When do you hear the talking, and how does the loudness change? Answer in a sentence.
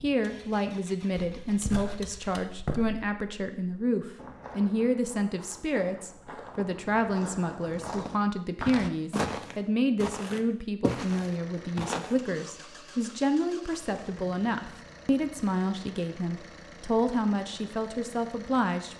You can hear the talking from 0.0 to 18.9 s, at a steady volume.